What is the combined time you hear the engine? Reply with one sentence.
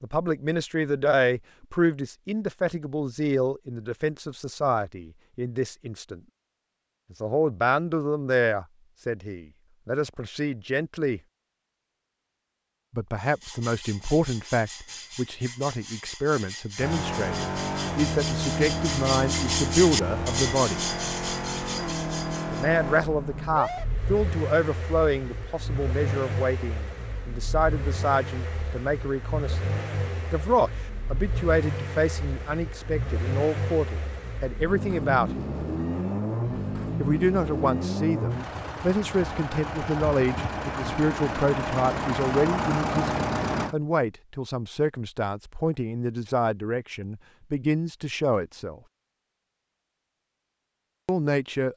The engine can be heard for 27 seconds in total.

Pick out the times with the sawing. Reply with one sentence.
You can hear the sawing from 13.2 to 22.8 s.